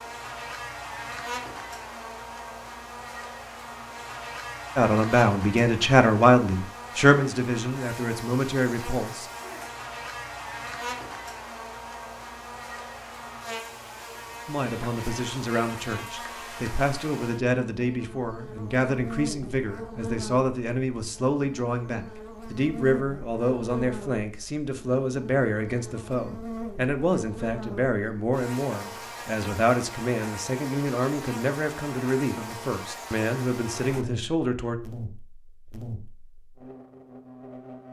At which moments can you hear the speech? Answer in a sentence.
You can hear the speech from 4.8 to 9.3 s and from 14.4 to 34.8 s.